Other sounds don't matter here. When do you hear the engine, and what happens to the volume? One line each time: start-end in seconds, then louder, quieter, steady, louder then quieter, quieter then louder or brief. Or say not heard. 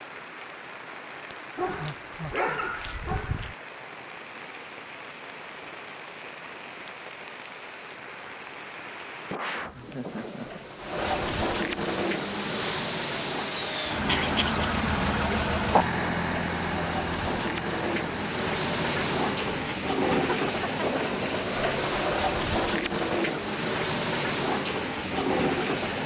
11.8-19.7 louder then quieter.